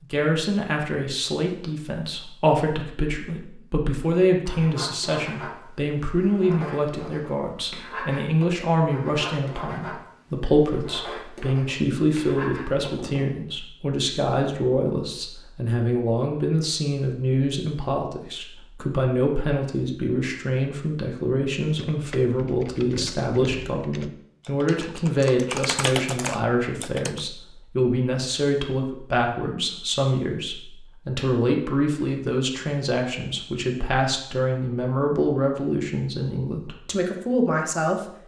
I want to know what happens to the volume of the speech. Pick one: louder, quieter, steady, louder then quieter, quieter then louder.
steady.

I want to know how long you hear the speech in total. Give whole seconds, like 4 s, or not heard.
38 s.